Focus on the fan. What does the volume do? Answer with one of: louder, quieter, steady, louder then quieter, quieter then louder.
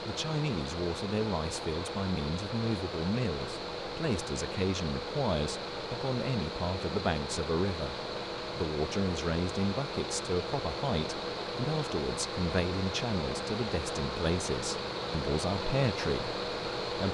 steady.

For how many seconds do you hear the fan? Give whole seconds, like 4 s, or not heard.
17 s.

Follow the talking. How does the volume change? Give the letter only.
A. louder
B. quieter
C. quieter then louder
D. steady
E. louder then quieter
D.